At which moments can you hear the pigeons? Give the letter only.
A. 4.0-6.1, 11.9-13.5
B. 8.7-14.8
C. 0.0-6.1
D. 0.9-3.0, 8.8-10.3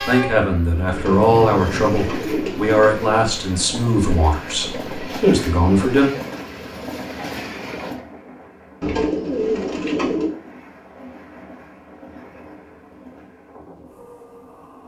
D.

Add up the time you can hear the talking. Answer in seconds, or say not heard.
6 s.